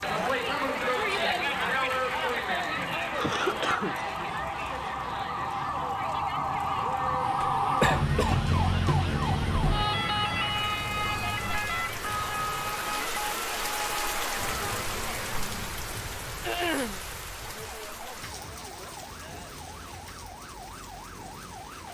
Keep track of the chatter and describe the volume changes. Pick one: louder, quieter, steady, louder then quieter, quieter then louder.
quieter.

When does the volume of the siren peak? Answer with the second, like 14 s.
8 s.